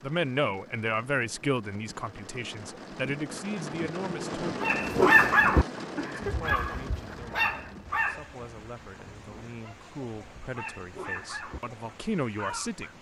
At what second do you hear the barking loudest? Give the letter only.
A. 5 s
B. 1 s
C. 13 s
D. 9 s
A.